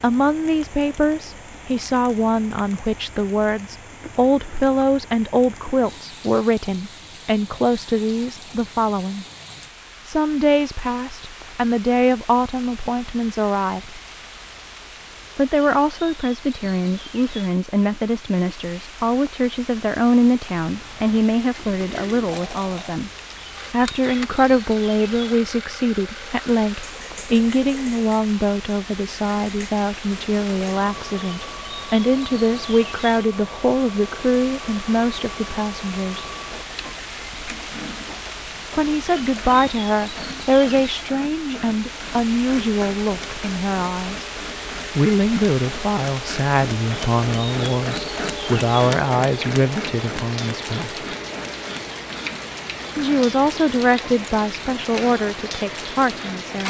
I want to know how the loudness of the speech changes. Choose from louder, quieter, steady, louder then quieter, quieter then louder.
steady.